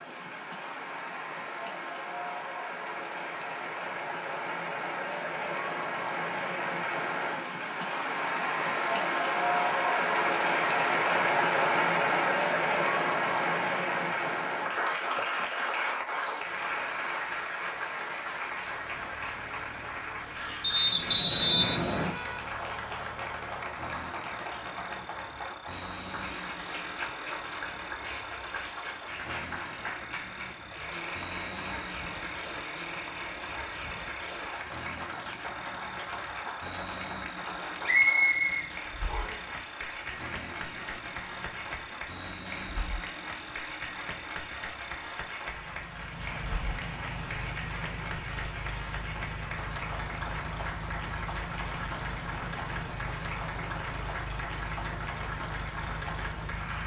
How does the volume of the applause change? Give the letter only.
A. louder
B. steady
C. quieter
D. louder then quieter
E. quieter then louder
C.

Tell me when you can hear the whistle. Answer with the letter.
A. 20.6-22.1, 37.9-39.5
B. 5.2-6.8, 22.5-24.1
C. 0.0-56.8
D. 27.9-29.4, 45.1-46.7
A.